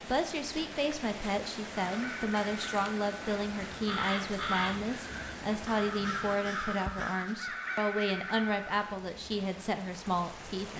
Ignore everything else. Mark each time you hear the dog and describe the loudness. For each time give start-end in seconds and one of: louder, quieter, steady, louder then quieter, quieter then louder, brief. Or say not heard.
not heard.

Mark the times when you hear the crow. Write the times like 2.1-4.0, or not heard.
1.8-8.8.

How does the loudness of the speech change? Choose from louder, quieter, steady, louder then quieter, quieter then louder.
steady.